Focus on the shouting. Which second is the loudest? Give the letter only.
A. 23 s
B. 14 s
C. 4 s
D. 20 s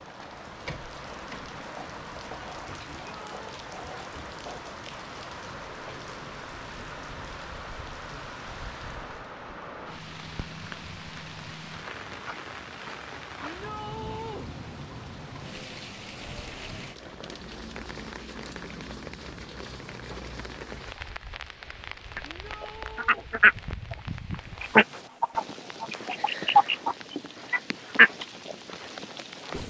B.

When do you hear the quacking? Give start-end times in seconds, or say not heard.
22.1-23.9, 24.6-28.6.